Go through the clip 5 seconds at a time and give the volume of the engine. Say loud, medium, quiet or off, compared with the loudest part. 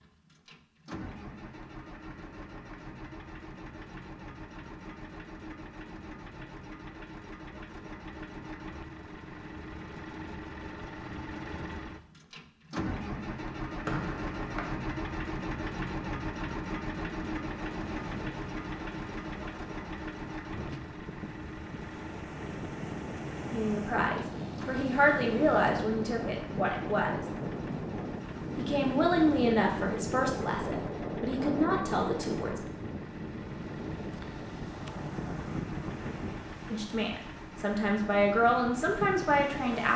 medium, medium, loud, loud, medium, medium, medium, medium.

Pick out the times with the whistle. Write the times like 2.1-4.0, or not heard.
13.8-14.7.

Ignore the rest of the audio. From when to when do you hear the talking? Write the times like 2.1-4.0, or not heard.
23.5-27.2, 28.6-32.7, 36.7-39.9.